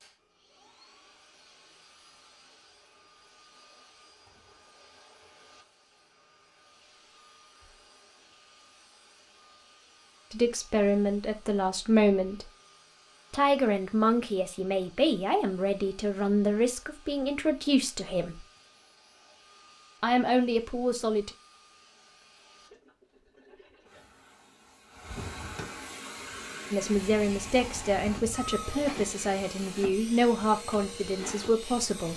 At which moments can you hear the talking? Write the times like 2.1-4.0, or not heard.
10.3-12.5, 13.3-18.4, 20.0-21.3, 26.7-32.1.